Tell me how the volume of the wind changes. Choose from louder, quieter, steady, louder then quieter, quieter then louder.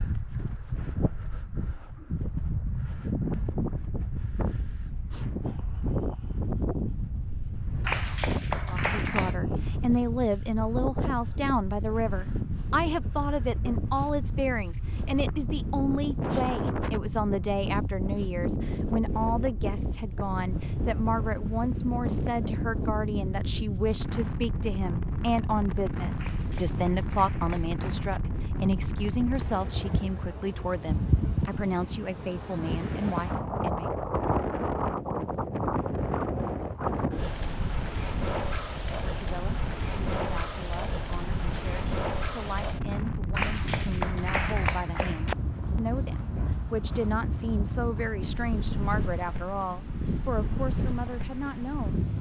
steady.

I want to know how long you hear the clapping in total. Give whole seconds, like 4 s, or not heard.
6 s.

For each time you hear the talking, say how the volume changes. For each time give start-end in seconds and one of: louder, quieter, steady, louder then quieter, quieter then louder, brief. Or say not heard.
8.7-33.9 steady
39.0-52.0 louder.